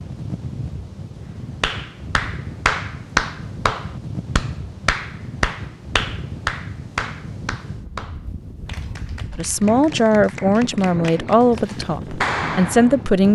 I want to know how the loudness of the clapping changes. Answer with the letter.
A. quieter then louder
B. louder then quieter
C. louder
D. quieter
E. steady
A.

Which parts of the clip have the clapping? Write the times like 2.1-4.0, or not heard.
1.6-12.9.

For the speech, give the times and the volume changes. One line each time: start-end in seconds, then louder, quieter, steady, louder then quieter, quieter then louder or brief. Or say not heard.
9.3-13.3 quieter then louder.